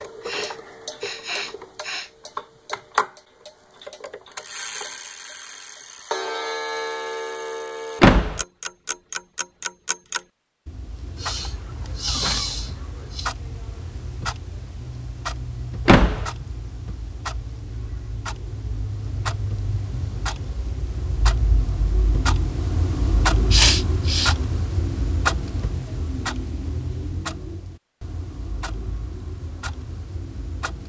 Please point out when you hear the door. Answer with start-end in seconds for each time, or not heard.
8.0-8.4, 15.8-16.3.